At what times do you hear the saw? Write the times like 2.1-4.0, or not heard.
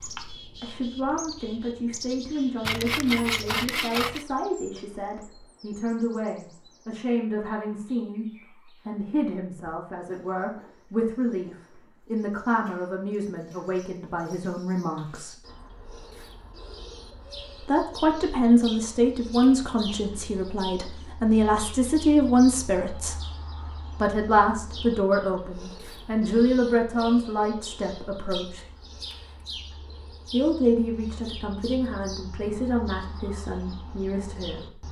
2.6-4.2.